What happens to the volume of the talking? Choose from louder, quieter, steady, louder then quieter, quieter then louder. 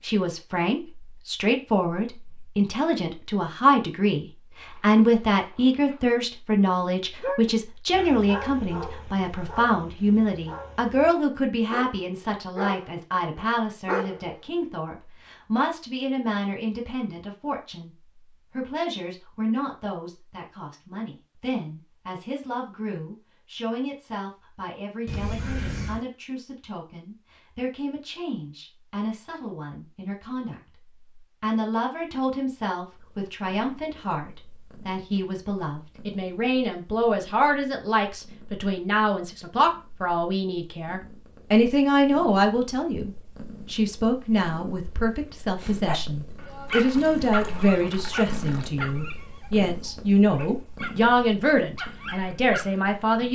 quieter then louder.